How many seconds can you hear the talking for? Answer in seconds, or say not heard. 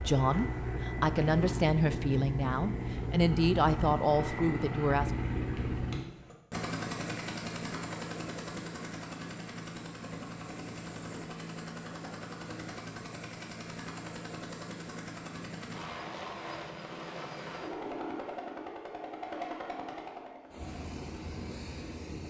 5 s.